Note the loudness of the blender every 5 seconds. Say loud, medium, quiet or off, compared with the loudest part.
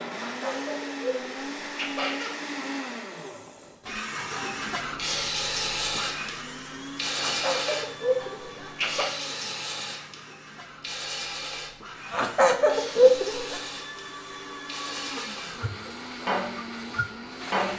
loud, medium, medium, loud.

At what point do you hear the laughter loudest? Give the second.
13 s.